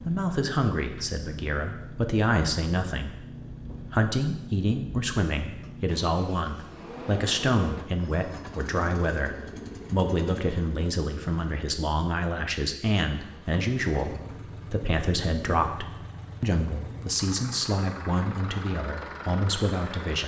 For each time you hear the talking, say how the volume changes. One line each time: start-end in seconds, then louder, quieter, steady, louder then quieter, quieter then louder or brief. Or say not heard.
0.0-20.2 steady.